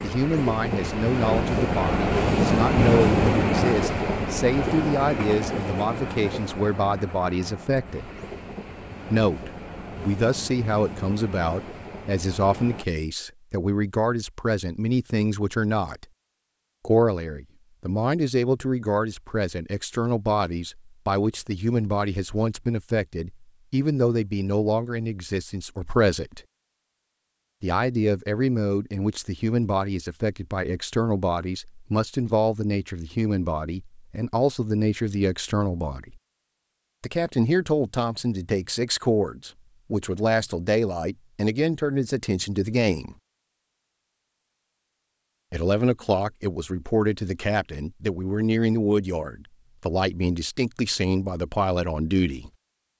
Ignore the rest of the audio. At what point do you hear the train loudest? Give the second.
3 s.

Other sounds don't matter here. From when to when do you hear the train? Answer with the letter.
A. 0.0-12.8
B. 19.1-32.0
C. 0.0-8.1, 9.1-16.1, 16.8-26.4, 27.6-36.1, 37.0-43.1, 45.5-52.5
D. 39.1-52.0
A.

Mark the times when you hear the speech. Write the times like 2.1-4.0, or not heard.
0.0-8.1, 9.1-16.1, 16.8-26.4, 27.6-36.1, 37.0-43.1, 45.5-52.5.